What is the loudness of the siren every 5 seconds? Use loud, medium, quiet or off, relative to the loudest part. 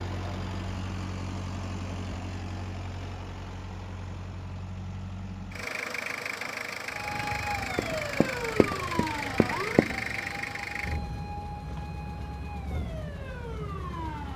off, loud, medium.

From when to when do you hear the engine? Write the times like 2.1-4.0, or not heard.
0.0-14.3.